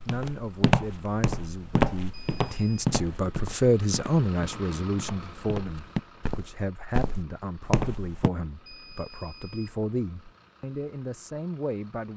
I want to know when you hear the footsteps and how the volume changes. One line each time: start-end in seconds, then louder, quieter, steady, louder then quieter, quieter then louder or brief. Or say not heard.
0.0-8.3 quieter then louder.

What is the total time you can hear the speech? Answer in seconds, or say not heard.
12 s.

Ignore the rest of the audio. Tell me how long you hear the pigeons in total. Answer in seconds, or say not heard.
not heard.